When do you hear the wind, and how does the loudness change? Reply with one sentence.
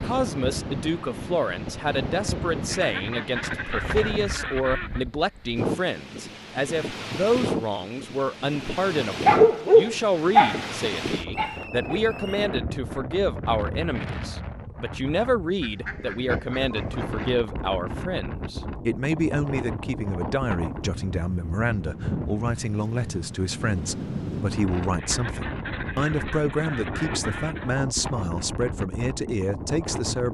You can hear the wind from 0.0 to 30.2 s, at a steady volume.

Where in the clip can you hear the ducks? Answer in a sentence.
The ducks can be heard from 2.6 to 5.0 s, from 15.6 to 17.2 s and from 24.9 to 27.8 s.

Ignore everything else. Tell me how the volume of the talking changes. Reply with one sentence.
The loudness of the talking stays about the same.